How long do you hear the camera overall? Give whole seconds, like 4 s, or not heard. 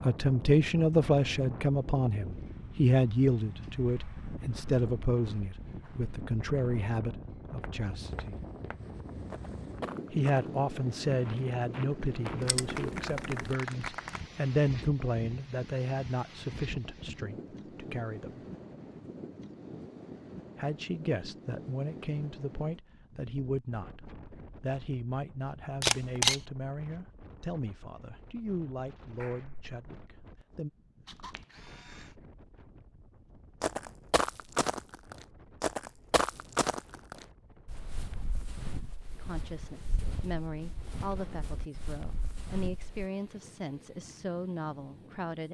3 s.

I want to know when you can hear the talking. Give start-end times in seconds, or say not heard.
0.0-8.4, 10.1-18.4, 20.6-30.7, 39.1-45.4.